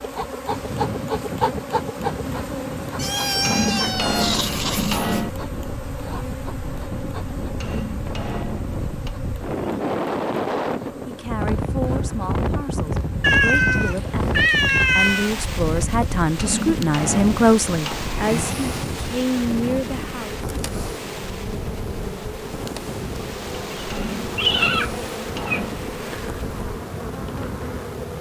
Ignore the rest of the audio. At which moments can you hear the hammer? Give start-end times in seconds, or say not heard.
3.4-5.3, 7.6-9.2, 16.4-18.1, 23.9-25.8.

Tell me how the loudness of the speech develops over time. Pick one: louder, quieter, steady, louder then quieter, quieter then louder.
louder then quieter.